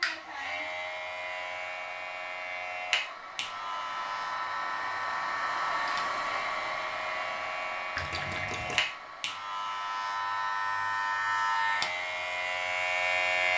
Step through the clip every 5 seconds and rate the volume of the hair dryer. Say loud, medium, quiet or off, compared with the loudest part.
medium, loud, medium.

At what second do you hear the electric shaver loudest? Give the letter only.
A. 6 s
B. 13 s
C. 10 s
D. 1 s
B.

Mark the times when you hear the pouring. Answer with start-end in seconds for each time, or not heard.
8.0-8.8.